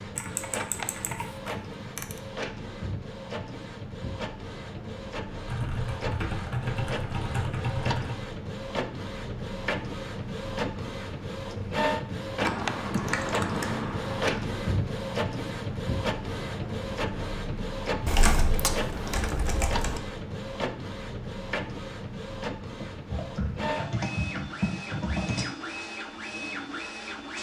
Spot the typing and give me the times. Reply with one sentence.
The typing can be heard from 0.1 to 2.2 s, from 5.5 to 8.2 s, from 12.4 to 14.4 s, from 18.1 to 20.0 s and from 22.8 to 25.4 s.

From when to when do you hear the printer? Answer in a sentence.
The printer can be heard from 0.0 to 27.3 s.